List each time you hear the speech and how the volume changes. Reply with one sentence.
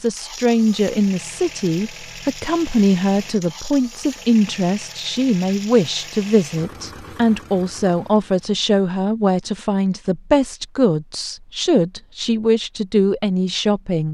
The speech can be heard from 0.0 to 14.0 s, at a steady volume.